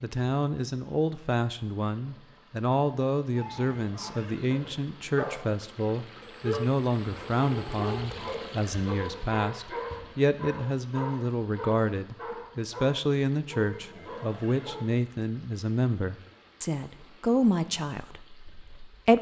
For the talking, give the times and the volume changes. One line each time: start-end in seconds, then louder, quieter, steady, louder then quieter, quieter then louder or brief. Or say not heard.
0.0-19.1 steady.